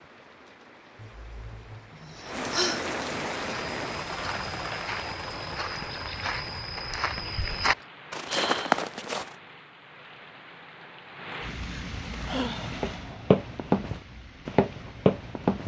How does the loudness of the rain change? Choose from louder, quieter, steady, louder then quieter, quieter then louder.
quieter.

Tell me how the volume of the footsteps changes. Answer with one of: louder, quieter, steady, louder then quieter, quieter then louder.
louder.